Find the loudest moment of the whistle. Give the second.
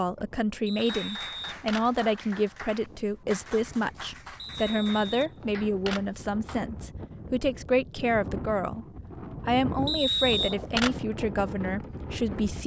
10 s.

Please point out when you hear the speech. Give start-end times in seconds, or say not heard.
0.0-8.8, 9.4-12.6.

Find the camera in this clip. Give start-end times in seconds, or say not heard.
1.2-2.0, 5.4-6.2, 10.4-11.1.